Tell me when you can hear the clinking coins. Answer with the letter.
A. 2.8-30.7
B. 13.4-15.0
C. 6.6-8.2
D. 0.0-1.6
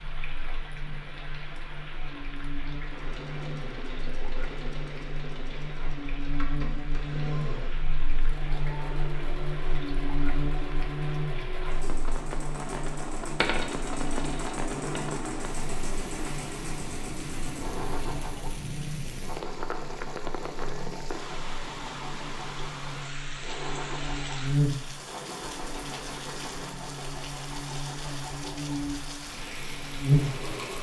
B.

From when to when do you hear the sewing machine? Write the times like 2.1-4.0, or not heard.
2.8-30.7.